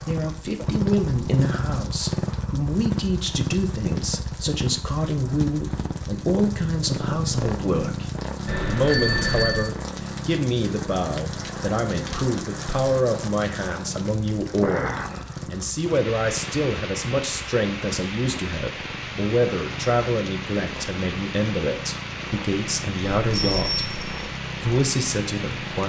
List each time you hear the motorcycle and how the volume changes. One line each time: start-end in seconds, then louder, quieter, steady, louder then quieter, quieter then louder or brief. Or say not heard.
0.0-25.8 quieter.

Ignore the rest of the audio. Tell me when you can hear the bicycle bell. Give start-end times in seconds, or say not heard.
8.4-9.7, 23.2-24.3.